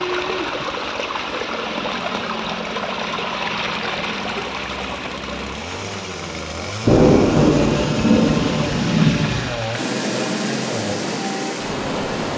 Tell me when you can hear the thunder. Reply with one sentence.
You can hear the thunder from 6.8 to 9.5 s.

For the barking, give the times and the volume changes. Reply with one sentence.
The barking can't be heard in this clip.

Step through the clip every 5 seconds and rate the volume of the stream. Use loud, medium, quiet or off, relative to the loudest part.
loud, medium, loud.